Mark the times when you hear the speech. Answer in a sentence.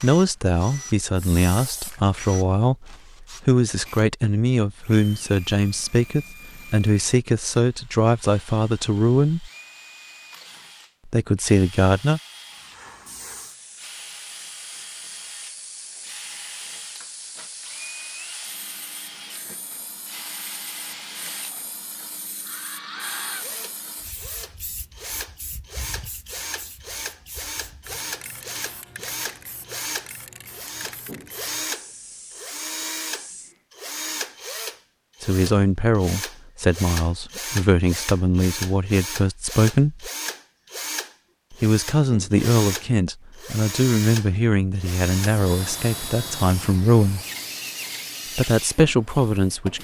The speech can be heard from 0.0 to 9.5 s, from 11.1 to 12.2 s, from 35.2 to 40.1 s, from 41.5 to 47.2 s and from 48.4 to 49.7 s.